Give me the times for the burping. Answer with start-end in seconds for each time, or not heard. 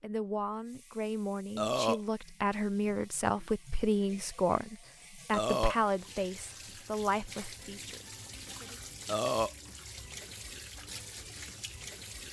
1.6-2.0, 5.3-5.8, 9.1-9.5.